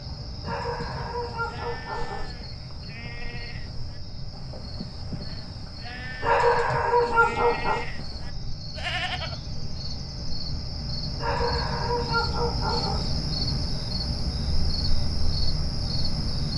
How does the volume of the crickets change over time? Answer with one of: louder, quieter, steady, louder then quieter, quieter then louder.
louder.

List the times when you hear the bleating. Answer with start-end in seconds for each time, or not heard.
0.6-9.8.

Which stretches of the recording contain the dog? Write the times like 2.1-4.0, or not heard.
0.4-2.3, 6.2-7.8, 11.2-13.1.